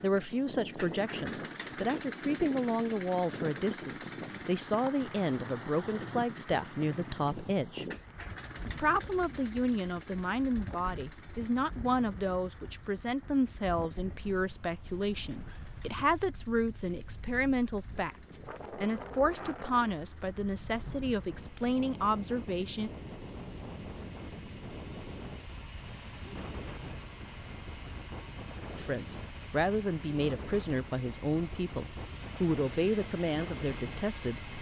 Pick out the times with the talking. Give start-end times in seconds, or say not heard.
0.0-7.8, 8.6-22.9, 28.8-34.5.